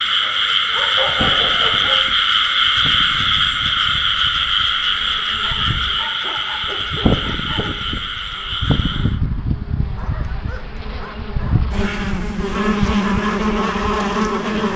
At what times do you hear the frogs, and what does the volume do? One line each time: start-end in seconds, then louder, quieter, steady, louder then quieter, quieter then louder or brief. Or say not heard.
0.0-9.2 quieter.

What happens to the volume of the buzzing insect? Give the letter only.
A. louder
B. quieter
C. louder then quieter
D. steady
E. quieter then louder
A.